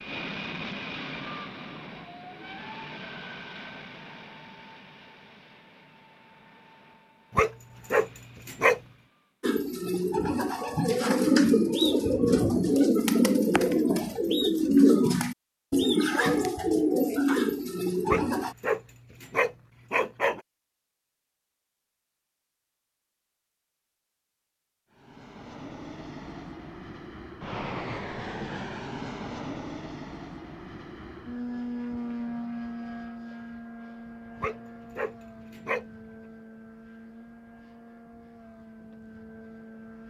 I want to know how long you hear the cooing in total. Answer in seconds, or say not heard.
9 s.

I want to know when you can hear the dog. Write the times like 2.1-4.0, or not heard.
7.3-8.8, 18.1-20.4, 34.4-35.9.